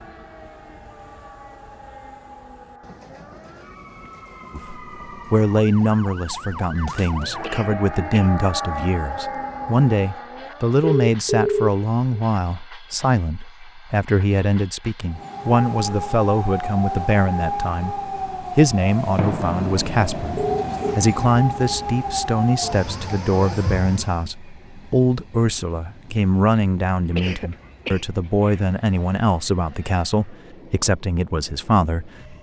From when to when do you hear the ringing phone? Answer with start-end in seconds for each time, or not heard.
10.8-12.2, 20.4-21.0.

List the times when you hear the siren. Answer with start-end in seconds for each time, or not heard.
0.0-10.8, 15.1-24.3.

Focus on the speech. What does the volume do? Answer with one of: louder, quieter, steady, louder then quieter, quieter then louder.
steady.